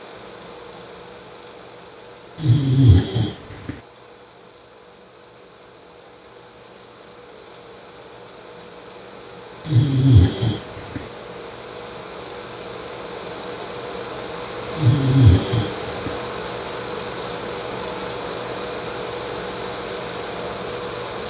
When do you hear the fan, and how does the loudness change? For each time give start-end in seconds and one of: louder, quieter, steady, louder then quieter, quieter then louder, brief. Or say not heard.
0.0-21.2 louder.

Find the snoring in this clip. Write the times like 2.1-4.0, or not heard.
2.4-3.8, 9.7-11.0, 14.8-16.1.